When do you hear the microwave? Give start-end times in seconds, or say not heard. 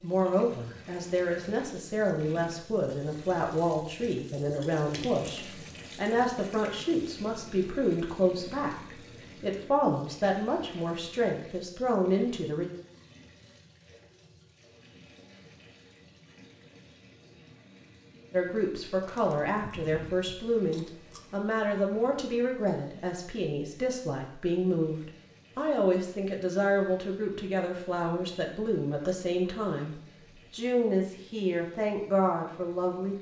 not heard.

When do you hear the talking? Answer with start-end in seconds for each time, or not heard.
0.0-12.7, 18.3-33.1.